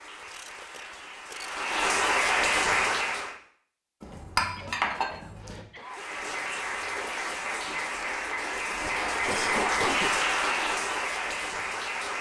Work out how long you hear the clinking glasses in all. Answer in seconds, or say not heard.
2 s.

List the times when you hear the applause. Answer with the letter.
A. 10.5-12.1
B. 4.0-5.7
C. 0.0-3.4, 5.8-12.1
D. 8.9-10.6
C.